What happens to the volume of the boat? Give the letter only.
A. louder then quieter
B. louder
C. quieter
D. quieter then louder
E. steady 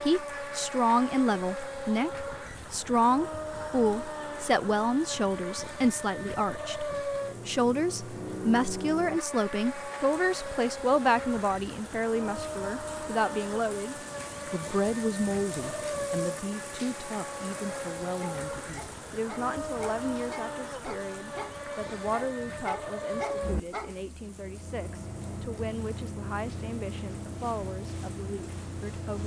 E.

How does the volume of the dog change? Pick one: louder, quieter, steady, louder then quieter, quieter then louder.
louder.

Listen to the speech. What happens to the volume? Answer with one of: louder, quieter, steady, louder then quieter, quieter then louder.
quieter.